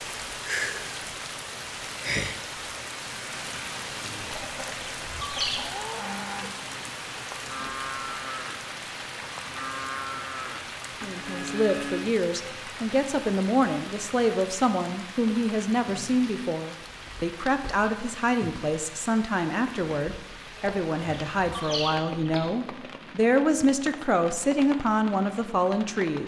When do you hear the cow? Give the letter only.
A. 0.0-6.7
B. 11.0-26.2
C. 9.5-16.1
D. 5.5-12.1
D.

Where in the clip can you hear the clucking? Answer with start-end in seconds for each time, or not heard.
4.2-5.7, 20.6-22.5.